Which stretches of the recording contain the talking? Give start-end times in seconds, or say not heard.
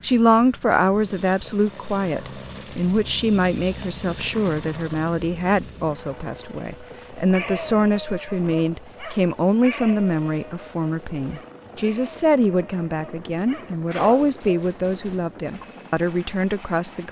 0.0-17.0.